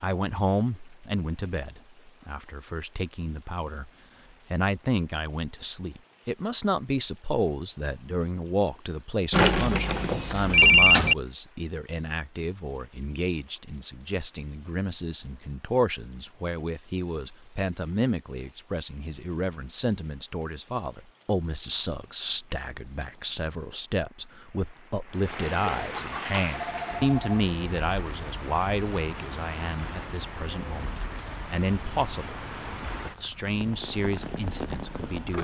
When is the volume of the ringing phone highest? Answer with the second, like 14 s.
11 s.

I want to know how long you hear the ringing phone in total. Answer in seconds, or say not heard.
4 s.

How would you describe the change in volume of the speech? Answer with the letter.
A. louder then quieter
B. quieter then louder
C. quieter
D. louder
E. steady
E.